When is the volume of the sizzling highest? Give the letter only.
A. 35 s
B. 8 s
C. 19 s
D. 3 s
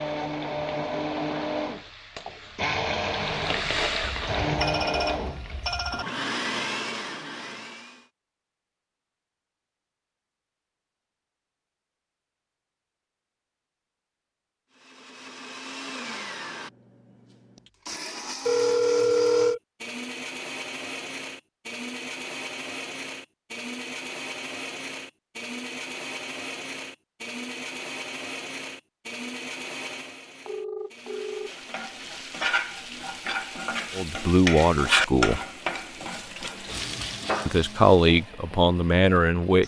A.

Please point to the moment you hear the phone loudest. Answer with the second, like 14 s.
19 s.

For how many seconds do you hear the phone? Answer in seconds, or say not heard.
4 s.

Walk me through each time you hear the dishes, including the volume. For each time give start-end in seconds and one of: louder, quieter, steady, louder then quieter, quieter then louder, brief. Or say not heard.
not heard.